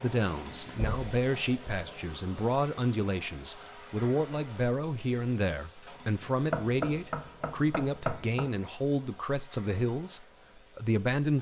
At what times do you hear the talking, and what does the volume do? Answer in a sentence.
The talking can be heard from 0.0 to 11.3 s, at a steady volume.